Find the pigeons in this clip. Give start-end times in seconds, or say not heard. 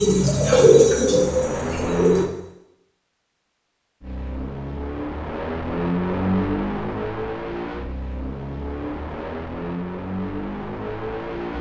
0.0-2.2.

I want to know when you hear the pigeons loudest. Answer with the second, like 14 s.
1 s.